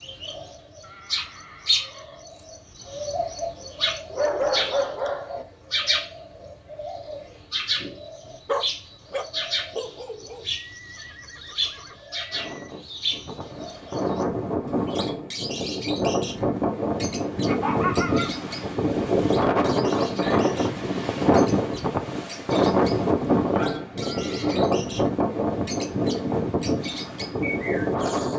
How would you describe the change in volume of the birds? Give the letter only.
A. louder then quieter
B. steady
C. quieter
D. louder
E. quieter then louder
C.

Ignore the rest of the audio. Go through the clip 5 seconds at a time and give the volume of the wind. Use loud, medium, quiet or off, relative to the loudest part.
off, off, medium, loud, loud, loud.